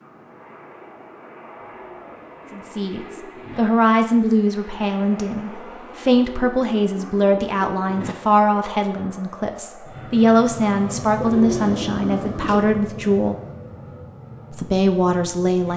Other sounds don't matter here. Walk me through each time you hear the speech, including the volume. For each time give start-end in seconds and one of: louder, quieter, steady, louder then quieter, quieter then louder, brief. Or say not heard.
2.5-13.3 steady
14.5-15.7 brief.